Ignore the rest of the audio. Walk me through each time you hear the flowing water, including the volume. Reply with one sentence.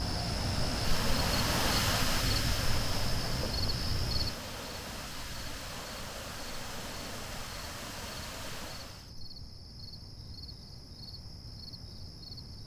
You can hear the flowing water from 0.0 to 9.2 s, getting quieter.